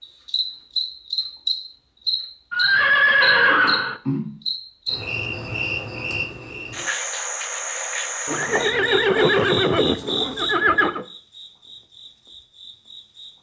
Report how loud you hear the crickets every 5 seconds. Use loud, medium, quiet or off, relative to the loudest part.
loud, loud, medium.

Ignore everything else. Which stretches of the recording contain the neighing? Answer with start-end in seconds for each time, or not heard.
2.5-4.0, 8.2-11.1.